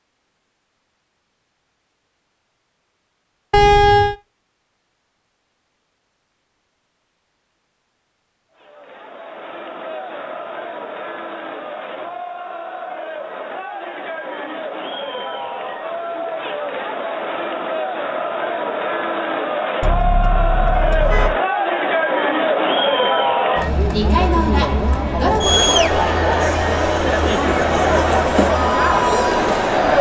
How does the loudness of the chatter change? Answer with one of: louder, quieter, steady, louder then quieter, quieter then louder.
louder.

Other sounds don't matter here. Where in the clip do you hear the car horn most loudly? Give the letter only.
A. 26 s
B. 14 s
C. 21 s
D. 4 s
D.